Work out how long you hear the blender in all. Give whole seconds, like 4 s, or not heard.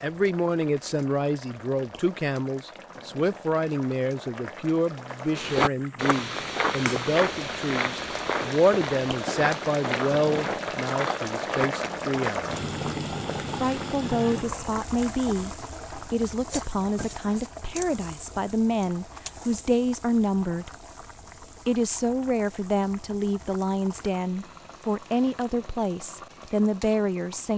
not heard.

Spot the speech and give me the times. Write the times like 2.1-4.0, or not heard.
0.0-12.6, 13.4-15.5, 16.1-20.7, 21.6-27.5.